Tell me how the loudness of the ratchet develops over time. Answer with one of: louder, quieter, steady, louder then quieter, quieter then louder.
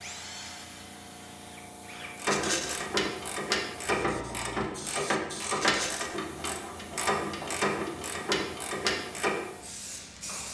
steady.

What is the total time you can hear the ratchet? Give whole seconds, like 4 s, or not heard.
7 s.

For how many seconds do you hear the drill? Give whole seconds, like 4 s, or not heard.
2 s.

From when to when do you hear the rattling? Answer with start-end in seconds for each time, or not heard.
2.2-2.9, 5.6-6.2.